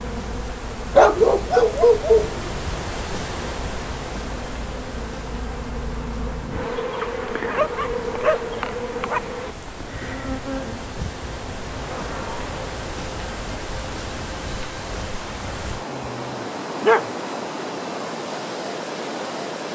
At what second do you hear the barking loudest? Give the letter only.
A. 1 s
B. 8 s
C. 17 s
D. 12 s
A.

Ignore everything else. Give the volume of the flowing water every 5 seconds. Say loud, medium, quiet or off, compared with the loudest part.
loud, medium, loud, loud.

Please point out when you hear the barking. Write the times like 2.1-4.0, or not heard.
0.9-2.5, 7.5-9.3, 15.9-17.1.